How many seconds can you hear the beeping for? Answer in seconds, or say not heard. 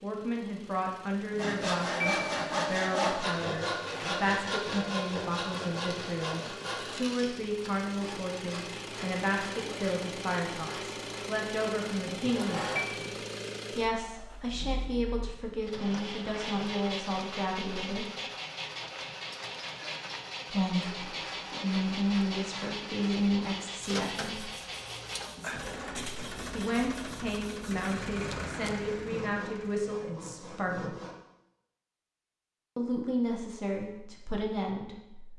3 s.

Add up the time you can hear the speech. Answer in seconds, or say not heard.
29 s.